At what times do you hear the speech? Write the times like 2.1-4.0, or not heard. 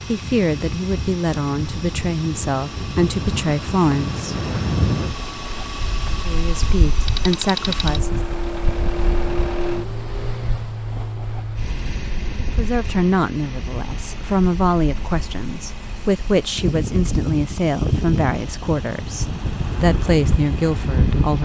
0.1-4.3, 6.2-8.2, 12.4-21.3.